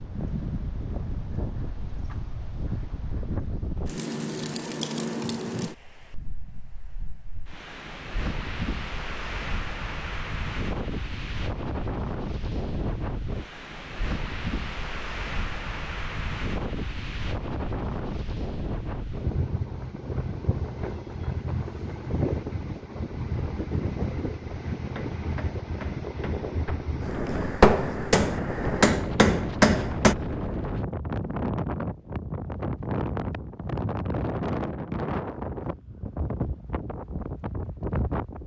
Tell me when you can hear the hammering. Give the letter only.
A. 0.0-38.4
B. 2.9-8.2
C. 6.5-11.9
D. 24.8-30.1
D.